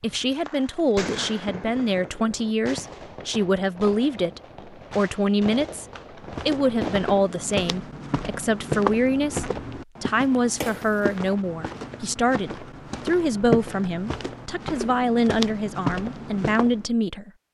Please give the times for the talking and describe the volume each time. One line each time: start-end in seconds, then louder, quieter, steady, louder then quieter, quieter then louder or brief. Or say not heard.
0.0-17.3 steady.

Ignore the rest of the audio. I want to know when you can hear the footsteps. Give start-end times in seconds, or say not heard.
6.3-16.9.